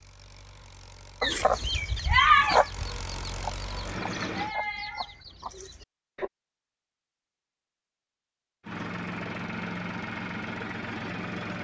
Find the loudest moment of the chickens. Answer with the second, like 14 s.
2 s.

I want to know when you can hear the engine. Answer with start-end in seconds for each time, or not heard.
0.0-4.5, 8.6-11.5.